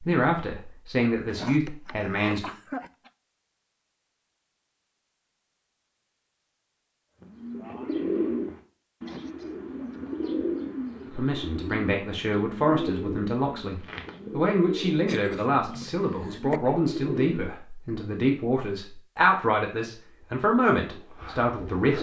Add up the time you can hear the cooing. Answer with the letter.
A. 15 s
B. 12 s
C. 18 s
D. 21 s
B.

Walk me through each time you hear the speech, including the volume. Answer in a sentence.
The speech can be heard briefly from 0.0 to 2.5 s; and from 11.1 to 21.9 s, at a steady volume.